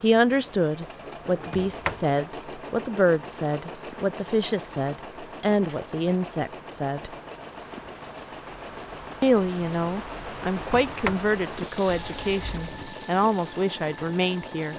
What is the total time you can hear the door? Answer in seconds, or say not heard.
3 s.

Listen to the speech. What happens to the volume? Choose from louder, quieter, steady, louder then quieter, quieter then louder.
steady.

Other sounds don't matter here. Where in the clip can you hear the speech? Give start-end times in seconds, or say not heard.
0.0-7.1, 9.2-14.7.